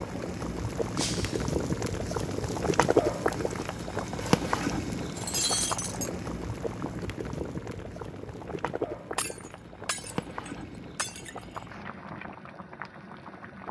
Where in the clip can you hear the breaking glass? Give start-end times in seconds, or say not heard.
0.9-1.4, 5.2-6.1, 9.2-11.6.